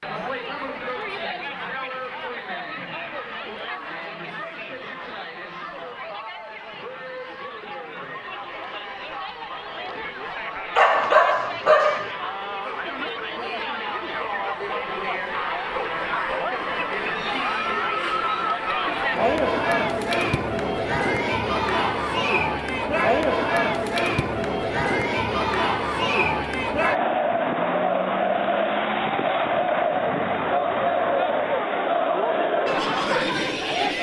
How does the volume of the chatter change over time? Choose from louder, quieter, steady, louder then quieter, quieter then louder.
louder.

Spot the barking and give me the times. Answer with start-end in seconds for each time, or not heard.
10.8-12.1.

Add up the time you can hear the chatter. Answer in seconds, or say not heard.
34 s.